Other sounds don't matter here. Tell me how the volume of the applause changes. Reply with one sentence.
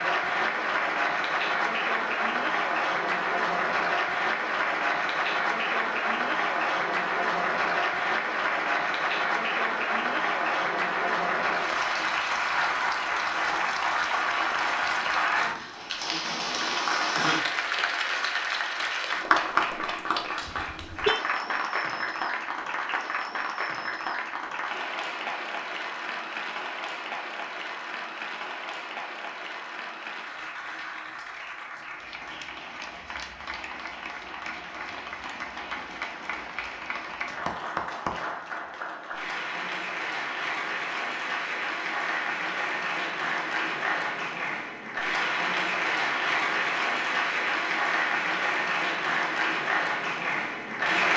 The volume of the applause goes down, then up.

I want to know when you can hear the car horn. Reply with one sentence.
The car horn can be heard from 20.4 to 21.2 s.